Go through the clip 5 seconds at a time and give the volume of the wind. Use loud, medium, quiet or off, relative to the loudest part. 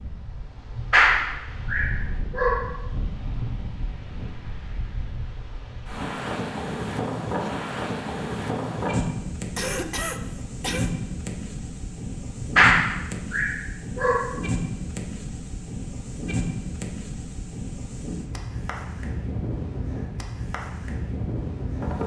medium, loud, loud, loud, loud.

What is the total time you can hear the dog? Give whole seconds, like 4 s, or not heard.
4 s.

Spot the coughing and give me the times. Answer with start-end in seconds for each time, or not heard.
9.6-10.9.